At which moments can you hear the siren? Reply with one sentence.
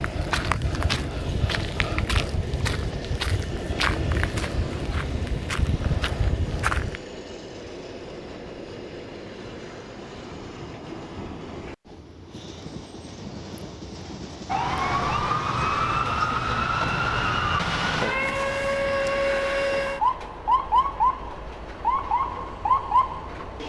The siren can be heard from 14.4 to 23.6 s.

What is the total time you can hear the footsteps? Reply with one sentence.
You can hear the footsteps for 7 seconds altogether.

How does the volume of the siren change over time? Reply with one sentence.
The loudness of the siren stays about the same.